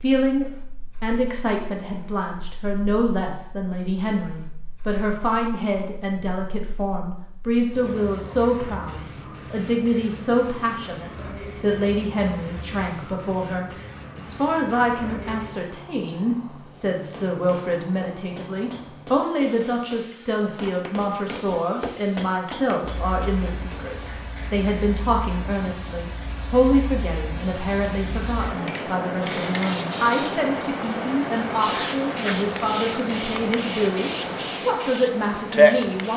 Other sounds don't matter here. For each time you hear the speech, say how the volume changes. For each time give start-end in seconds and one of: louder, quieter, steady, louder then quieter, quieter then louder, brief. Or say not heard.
0.0-36.1 steady.